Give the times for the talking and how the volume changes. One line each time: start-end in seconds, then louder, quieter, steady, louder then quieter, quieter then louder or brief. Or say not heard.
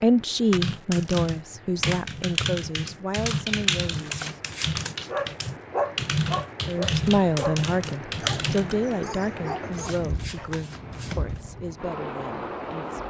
0.0-4.3 quieter
6.7-13.0 quieter.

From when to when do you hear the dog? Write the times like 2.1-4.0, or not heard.
5.0-10.6.